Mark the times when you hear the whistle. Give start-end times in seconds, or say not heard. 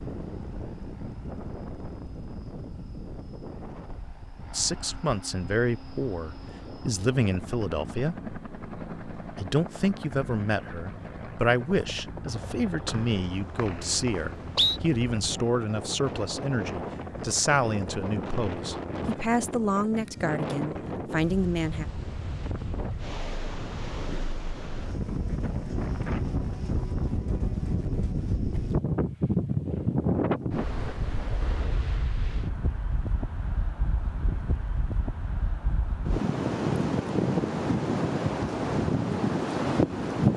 12.8-14.8.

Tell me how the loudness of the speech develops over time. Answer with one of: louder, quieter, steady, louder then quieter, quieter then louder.
steady.